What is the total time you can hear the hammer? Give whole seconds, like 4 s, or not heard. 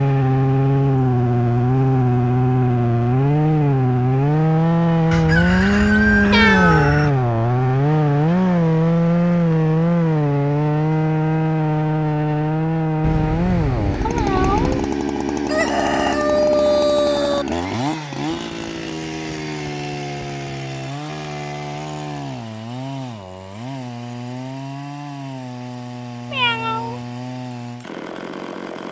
not heard.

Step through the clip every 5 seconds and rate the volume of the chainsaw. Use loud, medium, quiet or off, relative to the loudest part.
loud, loud, loud, medium, quiet, quiet.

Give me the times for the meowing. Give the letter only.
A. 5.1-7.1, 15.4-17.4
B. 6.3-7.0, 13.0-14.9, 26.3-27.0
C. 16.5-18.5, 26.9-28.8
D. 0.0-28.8
B.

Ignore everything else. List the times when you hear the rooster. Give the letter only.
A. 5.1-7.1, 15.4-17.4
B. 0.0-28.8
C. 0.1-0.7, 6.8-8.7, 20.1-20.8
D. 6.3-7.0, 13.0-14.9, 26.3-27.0
A.